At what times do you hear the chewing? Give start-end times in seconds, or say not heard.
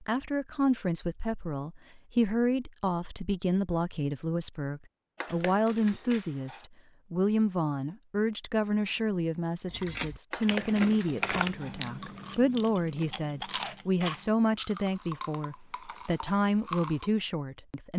9.7-17.1.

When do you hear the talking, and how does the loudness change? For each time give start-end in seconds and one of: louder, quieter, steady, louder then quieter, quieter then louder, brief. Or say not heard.
0.0-17.9 steady.